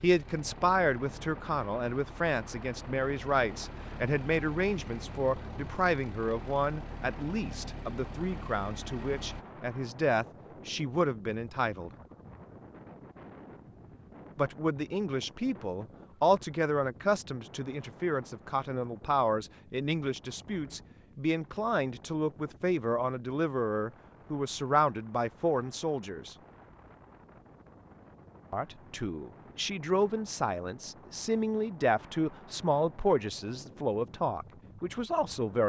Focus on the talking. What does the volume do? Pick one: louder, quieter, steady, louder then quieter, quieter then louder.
steady.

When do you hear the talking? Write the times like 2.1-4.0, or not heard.
0.0-11.9, 14.3-26.4, 28.5-35.6.